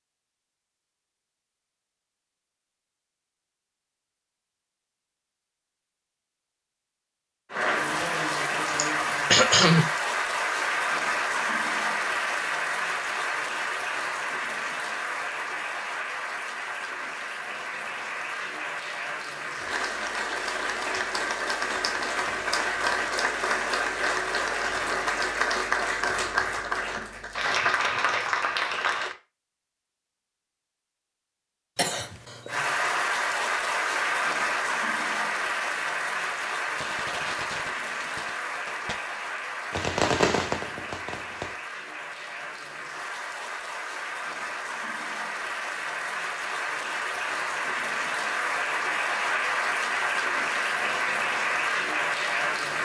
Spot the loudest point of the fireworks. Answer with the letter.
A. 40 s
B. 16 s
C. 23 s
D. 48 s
A.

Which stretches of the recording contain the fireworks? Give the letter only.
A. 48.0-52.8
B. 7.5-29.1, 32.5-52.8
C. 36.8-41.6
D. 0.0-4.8
C.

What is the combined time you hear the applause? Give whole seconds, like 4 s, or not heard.
42 s.